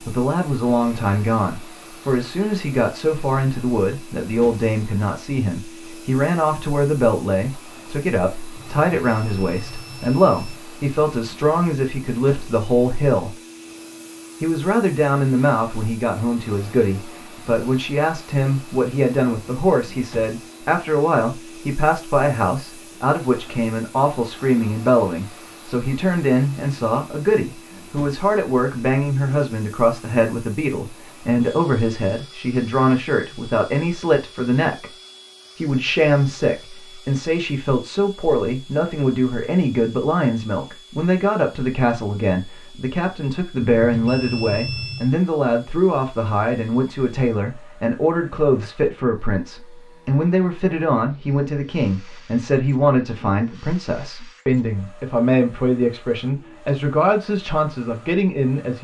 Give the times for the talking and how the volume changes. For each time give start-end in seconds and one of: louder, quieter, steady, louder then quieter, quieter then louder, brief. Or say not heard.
0.0-13.4 steady
14.4-35.0 steady
35.5-58.8 steady.